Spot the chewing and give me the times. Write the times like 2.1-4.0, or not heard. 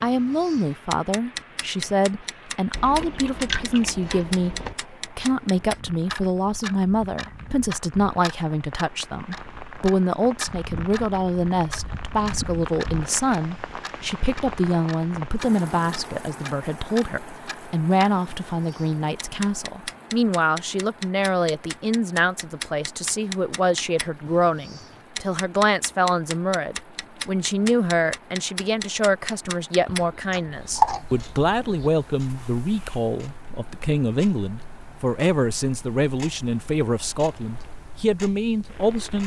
2.7-4.8, 29.9-31.9.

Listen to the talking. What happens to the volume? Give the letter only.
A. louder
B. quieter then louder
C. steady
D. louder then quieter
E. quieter
C.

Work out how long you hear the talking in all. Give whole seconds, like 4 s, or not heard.
39 s.